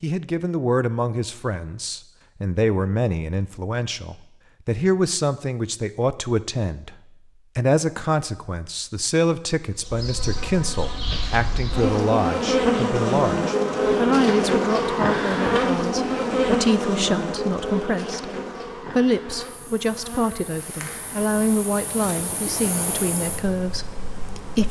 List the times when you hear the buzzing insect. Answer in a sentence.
You can hear the buzzing insect from 9.8 to 24.6 s.